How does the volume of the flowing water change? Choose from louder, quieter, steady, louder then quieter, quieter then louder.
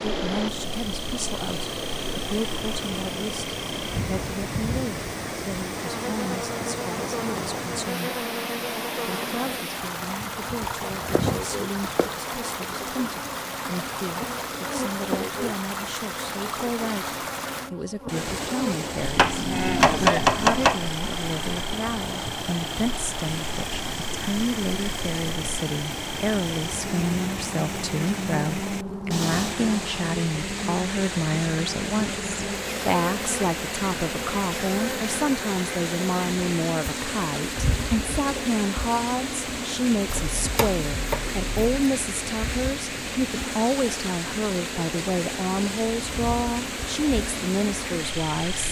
steady.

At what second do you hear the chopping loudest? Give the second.
20 s.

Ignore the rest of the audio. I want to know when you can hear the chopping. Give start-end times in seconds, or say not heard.
10.6-12.1, 19.1-20.8, 40.1-41.9.